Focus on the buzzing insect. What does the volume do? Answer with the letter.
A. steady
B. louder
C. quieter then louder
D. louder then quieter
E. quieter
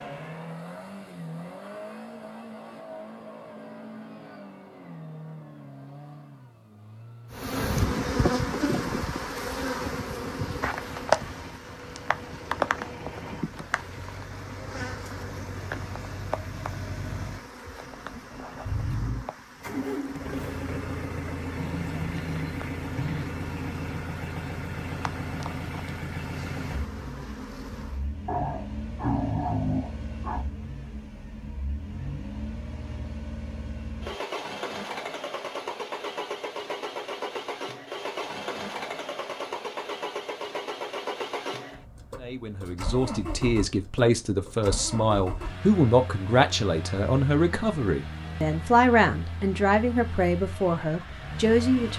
E.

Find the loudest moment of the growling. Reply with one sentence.
The loudest moment of the growling is at 29 seconds.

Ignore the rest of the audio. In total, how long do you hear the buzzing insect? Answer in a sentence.
You can hear the buzzing insect for 21 seconds altogether.